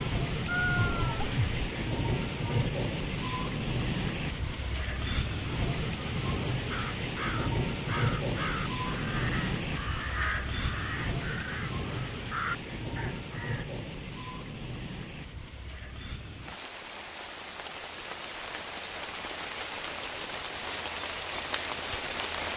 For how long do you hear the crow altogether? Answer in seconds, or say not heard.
7 s.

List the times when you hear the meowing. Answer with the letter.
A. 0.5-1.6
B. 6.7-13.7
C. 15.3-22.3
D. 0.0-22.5
A.